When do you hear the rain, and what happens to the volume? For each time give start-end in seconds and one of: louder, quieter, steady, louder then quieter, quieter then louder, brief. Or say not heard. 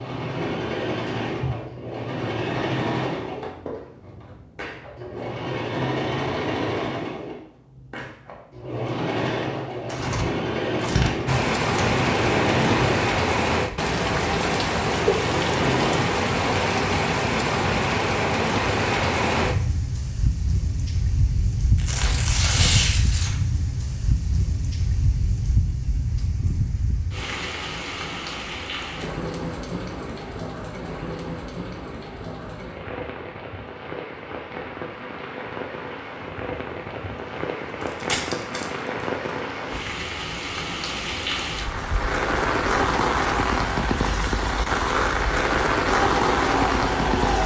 11.2-47.4 quieter then louder.